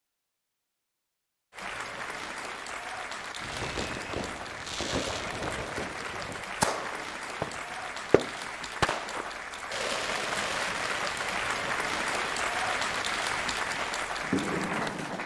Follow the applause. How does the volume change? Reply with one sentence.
The loudness of the applause goes up.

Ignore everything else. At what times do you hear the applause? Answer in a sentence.
You can hear the applause from 1.5 to 15.2 s.